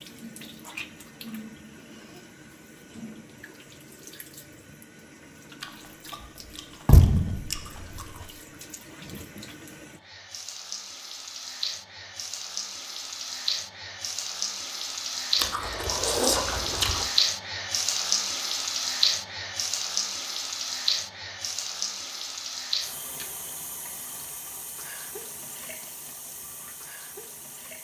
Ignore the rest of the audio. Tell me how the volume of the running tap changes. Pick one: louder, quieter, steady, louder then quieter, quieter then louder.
louder then quieter.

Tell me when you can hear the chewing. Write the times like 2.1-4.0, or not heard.
5.6-8.3, 15.3-17.1.